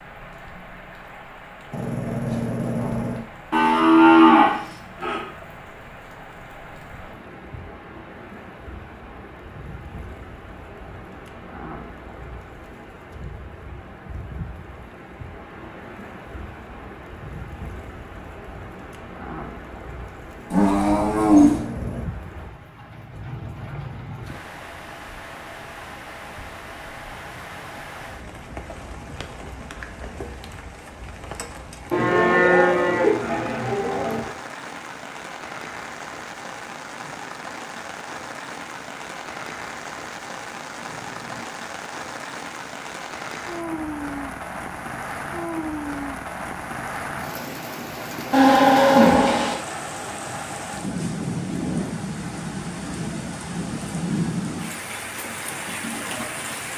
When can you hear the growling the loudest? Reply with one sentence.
The loudest moment of the growling is at 2 seconds.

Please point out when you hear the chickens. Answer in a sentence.
The chickens can't be heard in this clip.